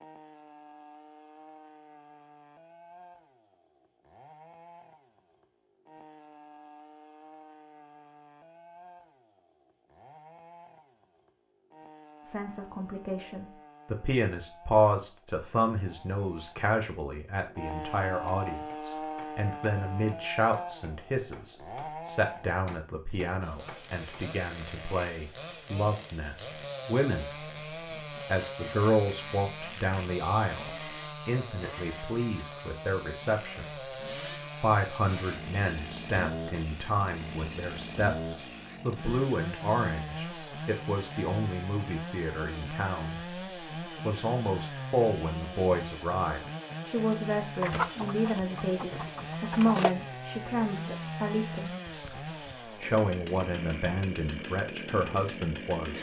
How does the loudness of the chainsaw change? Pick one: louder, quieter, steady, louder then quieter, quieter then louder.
louder.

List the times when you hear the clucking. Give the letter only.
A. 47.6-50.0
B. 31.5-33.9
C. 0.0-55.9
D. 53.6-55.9
A.